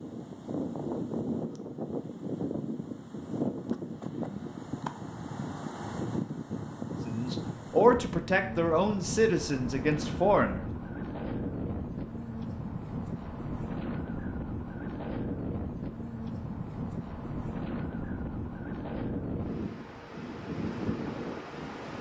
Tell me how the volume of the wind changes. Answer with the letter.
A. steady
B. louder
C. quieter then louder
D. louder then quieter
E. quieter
A.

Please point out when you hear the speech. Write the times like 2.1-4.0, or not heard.
7.0-10.7.